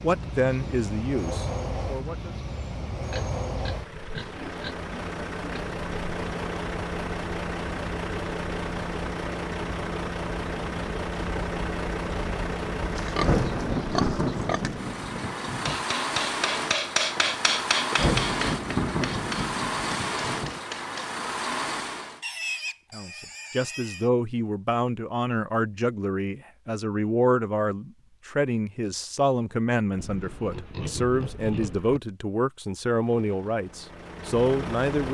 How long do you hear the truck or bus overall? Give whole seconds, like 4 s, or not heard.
24 s.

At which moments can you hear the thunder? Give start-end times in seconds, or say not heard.
13.2-15.8, 17.9-20.6.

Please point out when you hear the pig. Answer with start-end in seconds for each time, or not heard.
3.1-5.8, 12.9-14.7, 22.2-24.1, 29.9-32.0.